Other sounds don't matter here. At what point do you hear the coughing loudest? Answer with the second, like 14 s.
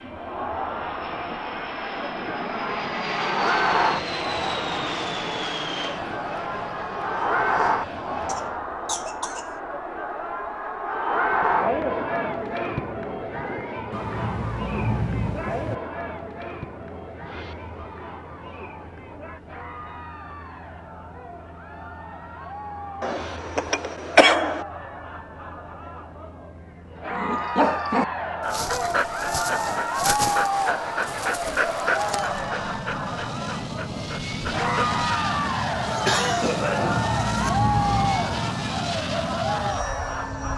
24 s.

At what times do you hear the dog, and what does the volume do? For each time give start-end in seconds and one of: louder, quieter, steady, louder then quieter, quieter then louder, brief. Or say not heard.
27.1-35.0 quieter.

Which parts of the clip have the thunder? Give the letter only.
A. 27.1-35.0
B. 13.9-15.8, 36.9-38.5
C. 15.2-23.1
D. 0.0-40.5
B.